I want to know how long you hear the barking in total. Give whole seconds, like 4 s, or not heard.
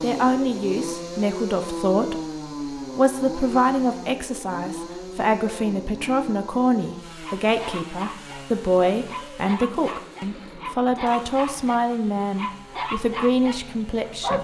7 s.